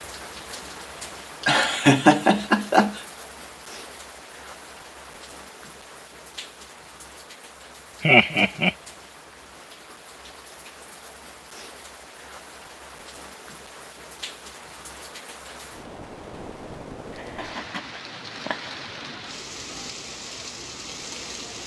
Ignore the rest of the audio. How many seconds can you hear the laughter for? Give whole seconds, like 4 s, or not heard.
4 s.